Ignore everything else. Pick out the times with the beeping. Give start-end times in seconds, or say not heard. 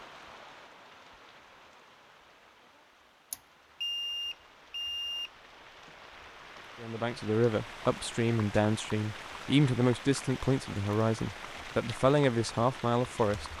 3.3-5.3.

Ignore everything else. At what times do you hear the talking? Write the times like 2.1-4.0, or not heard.
6.8-13.5.